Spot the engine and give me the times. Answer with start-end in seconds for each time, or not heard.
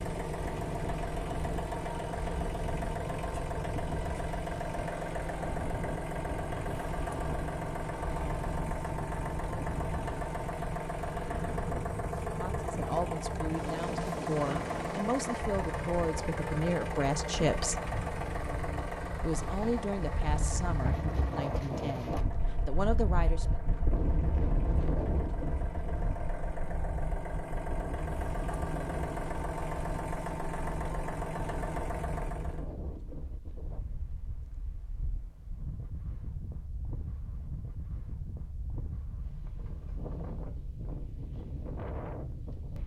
0.0-32.6.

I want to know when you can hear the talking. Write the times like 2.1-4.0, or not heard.
12.2-17.8, 19.2-23.6.